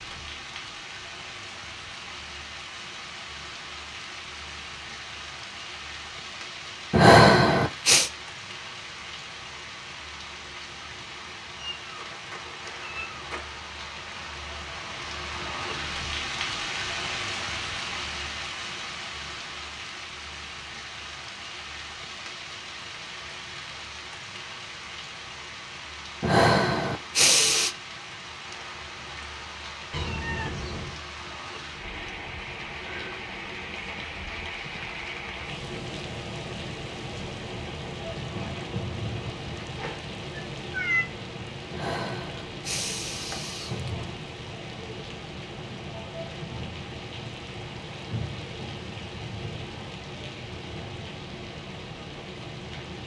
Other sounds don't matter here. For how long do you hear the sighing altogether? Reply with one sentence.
You can hear the sighing for 5 seconds altogether.